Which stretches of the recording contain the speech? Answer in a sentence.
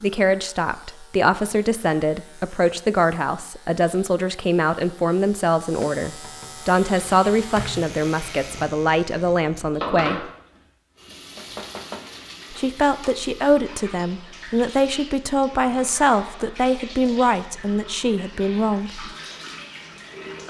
You can hear the speech from 0.0 to 10.3 s and from 12.5 to 19.1 s.